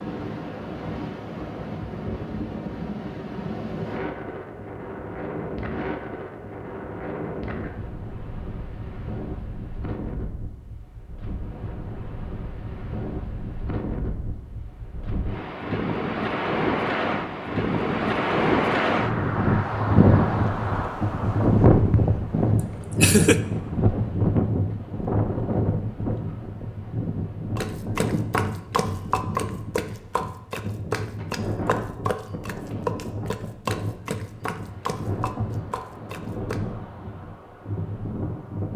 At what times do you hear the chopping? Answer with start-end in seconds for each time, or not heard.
27.6-36.6.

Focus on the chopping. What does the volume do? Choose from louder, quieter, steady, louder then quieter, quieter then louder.
quieter.